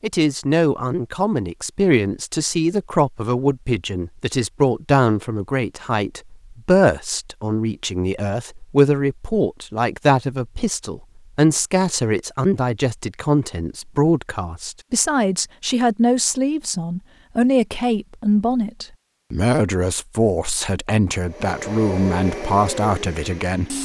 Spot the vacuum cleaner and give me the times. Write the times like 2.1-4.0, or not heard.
21.2-23.8.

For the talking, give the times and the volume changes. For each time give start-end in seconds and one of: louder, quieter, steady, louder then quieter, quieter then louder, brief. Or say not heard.
0.0-23.8 steady.